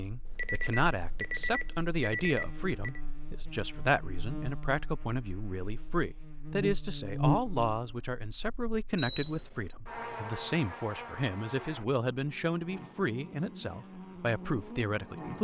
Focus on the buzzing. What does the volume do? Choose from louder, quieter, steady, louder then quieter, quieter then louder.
louder then quieter.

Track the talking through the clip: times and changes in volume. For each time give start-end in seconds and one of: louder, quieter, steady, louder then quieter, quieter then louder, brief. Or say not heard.
0.0-15.3 steady.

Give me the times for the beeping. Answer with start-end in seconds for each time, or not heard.
0.2-3.0, 8.9-9.8.